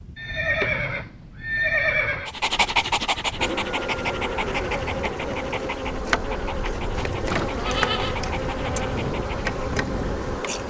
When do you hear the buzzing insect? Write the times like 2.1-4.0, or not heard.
3.4-10.6.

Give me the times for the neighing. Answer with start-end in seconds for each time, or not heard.
0.1-2.3, 7.2-8.2.